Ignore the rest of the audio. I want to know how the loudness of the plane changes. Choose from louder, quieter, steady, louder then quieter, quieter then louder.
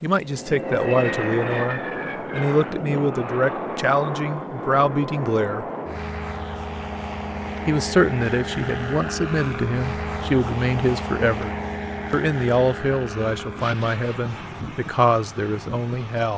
quieter.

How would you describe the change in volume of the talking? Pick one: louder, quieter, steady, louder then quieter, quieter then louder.
steady.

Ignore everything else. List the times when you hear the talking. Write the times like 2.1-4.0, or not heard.
0.0-5.7, 7.7-11.5, 12.1-16.3.